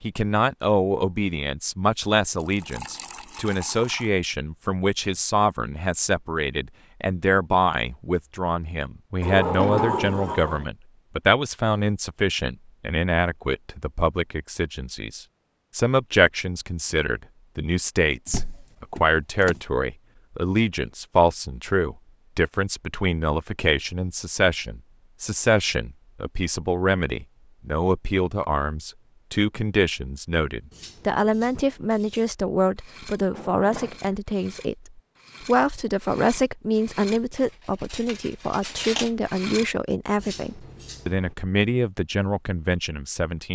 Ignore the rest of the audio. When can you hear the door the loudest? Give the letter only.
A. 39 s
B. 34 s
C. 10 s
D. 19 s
C.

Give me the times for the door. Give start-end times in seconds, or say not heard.
9.2-10.7, 18.2-19.6, 33.3-34.1.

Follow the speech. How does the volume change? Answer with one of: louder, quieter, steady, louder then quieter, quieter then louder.
steady.